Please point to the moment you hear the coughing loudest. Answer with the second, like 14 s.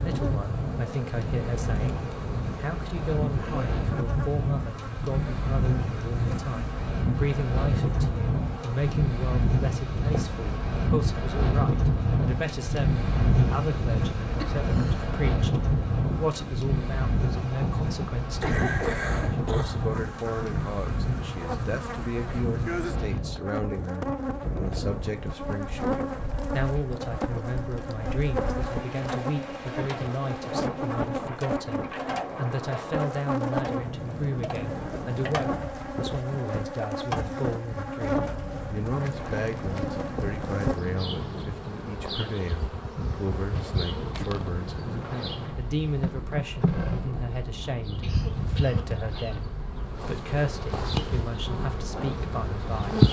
19 s.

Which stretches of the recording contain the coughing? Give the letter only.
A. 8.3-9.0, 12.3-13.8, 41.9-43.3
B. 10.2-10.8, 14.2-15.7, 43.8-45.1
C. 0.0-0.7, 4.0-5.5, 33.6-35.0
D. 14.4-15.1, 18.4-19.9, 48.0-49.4
D.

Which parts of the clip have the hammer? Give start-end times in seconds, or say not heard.
not heard.